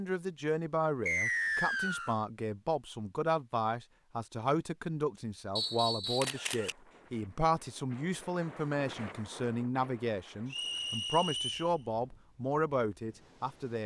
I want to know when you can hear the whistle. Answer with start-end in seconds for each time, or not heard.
1.1-2.1, 5.5-6.3, 10.5-11.7.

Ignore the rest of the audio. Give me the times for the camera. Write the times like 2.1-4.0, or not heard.
6.2-6.8.